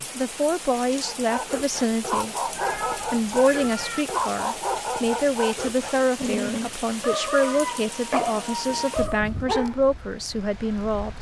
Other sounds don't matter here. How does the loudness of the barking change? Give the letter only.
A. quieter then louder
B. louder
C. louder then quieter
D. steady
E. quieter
D.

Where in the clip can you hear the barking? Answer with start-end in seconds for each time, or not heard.
1.0-9.8.